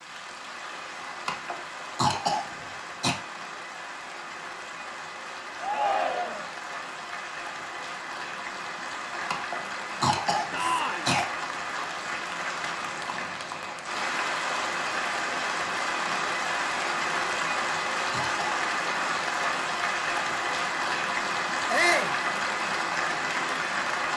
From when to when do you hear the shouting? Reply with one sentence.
The shouting can be heard from 5.6 to 6.5 s, from 10.5 to 11.1 s and from 21.7 to 22.1 s.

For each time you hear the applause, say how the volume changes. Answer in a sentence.
You can hear the applause from 0.0 to 24.1 s, getting louder.